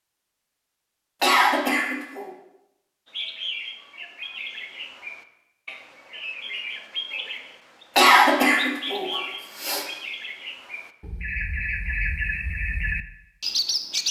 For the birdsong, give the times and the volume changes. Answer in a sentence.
The birdsong can be heard from 3.0 to 14.0 s, getting louder.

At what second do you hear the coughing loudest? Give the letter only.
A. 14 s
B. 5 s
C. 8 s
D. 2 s
C.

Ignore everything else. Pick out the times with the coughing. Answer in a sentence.
You can hear the coughing from 1.2 to 2.3 s and from 8.0 to 9.8 s.